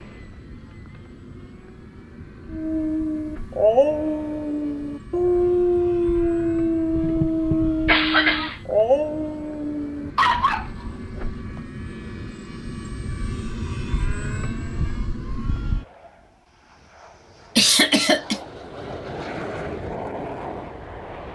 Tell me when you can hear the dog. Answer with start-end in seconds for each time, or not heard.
2.5-11.2.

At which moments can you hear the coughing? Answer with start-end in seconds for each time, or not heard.
7.0-8.6, 17.6-18.4.